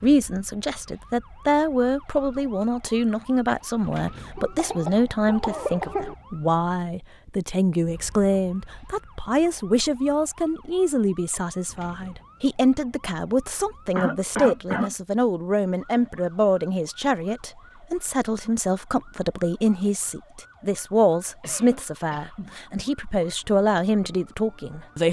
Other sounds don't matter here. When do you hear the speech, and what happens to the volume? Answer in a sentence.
The speech can be heard from 0.0 to 25.0 s, at a steady volume.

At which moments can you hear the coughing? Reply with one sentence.
The coughing can be heard from 4.3 to 6.2 s, from 13.9 to 14.9 s and from 21.4 to 22.6 s.